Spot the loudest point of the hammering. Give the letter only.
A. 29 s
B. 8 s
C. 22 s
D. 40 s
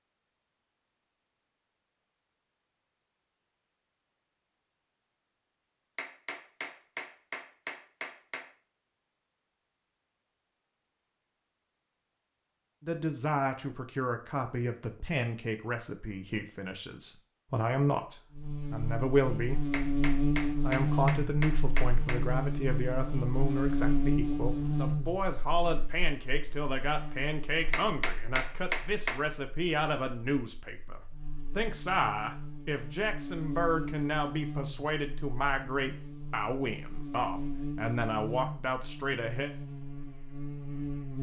A.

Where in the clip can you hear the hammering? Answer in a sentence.
The hammering can be heard from 6.0 to 8.5 s, from 19.7 to 22.2 s and from 27.7 to 29.2 s.